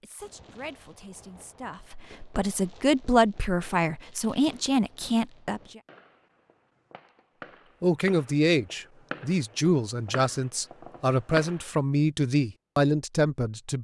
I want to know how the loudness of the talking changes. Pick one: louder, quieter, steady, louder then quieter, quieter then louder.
louder.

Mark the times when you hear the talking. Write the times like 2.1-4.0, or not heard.
0.0-5.8, 7.8-13.7.